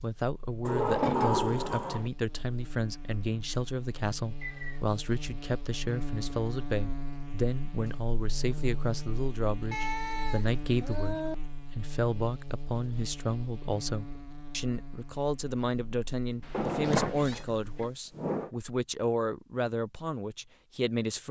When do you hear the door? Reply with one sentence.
The door can be heard from 0.7 to 2.1 s and from 16.5 to 18.5 s.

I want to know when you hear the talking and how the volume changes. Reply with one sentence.
The talking can be heard from 0.0 to 21.2 s, at a steady volume.